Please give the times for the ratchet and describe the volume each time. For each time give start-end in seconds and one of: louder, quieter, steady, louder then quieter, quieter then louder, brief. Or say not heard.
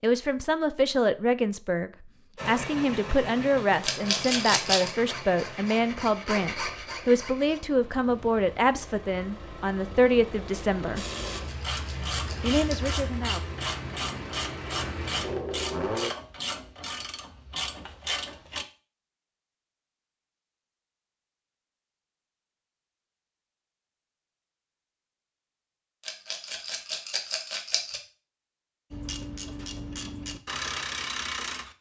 10.9-18.6 steady
28.9-31.7 brief.